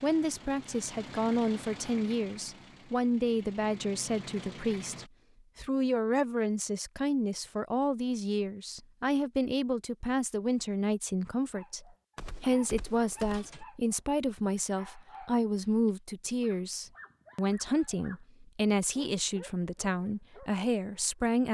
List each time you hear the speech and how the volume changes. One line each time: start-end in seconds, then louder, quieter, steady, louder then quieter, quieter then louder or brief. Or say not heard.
0.0-21.4 steady.